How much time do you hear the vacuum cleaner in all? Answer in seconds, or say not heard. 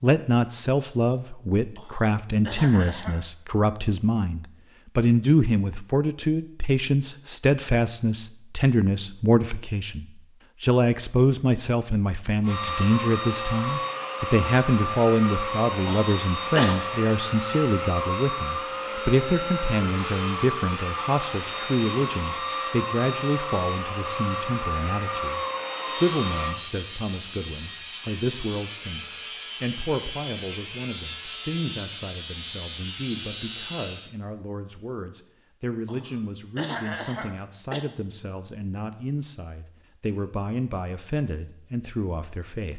14 s.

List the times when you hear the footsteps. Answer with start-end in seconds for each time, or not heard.
not heard.